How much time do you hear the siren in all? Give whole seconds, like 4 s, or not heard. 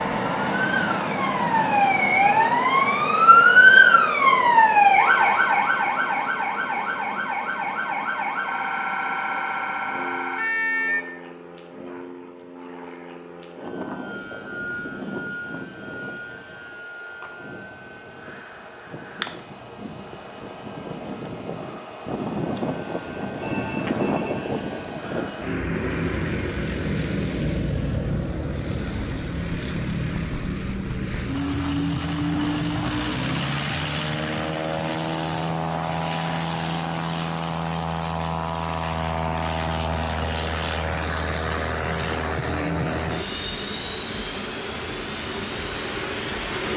11 s.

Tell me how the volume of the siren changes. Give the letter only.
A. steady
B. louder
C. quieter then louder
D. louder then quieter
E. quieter
D.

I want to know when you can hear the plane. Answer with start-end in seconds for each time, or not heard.
0.0-46.7.